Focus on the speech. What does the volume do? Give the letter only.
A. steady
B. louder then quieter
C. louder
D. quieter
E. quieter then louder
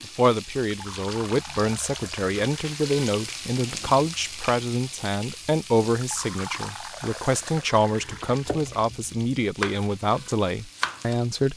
A.